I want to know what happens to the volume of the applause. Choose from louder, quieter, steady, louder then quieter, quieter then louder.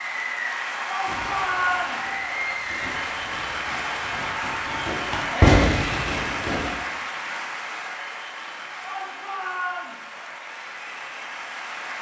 quieter.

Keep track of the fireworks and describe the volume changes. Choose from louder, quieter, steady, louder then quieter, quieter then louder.
louder.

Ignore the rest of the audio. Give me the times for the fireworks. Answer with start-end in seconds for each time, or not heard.
1.1-6.8.